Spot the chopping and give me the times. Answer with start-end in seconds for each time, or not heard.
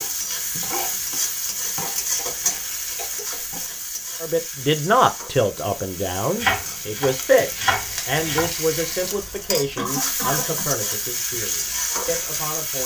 0.0-3.6, 6.4-8.5.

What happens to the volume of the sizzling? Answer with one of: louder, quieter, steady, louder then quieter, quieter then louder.
quieter then louder.